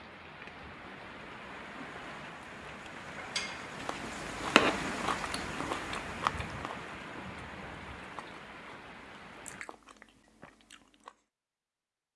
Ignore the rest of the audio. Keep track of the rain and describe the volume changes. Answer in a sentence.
The loudness of the rain goes up, then down.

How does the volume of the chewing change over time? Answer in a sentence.
The loudness of the chewing goes down.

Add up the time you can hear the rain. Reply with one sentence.
You can hear the rain for 10 seconds altogether.